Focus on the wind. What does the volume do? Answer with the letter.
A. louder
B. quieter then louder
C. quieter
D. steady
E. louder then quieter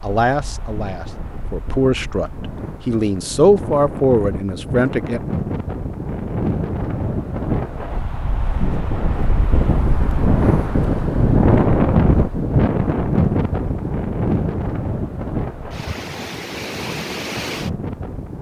E.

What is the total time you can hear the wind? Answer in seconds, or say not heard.
18 s.